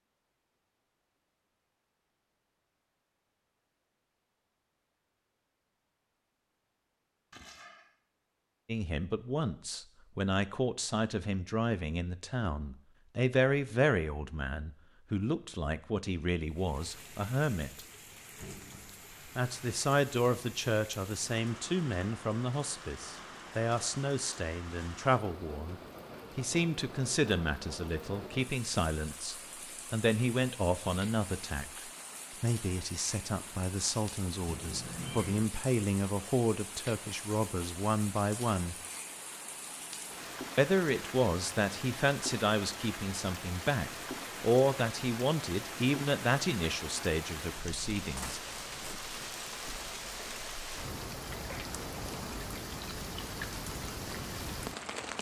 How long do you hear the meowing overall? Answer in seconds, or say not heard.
2 s.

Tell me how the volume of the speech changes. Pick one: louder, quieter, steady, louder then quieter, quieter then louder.
steady.